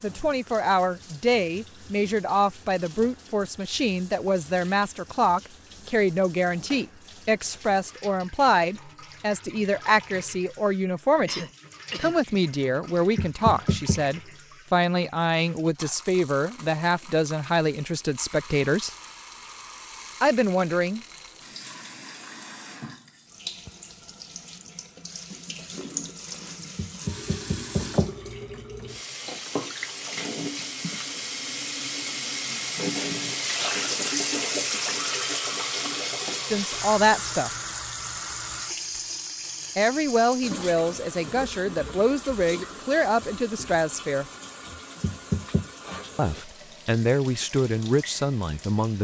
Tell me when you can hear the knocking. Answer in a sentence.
You can hear the knocking from 13.2 to 14.1 s, from 26.8 to 28.1 s and from 45.0 to 45.6 s.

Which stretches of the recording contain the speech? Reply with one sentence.
The speech can be heard from 0.0 to 18.9 s, from 20.2 to 21.0 s, from 36.5 to 37.5 s, from 39.8 to 44.2 s and from 46.1 to 48.9 s.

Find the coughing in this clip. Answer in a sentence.
You can hear the coughing from 10.8 to 12.2 s.